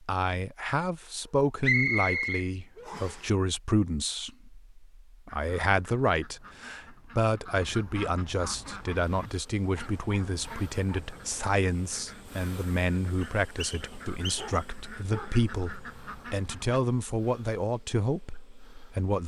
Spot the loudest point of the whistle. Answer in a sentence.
The loudest moment of the whistle is at 2 seconds.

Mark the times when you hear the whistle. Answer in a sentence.
The whistle can be heard from 1.6 to 3.2 s and from 13.2 to 14.7 s.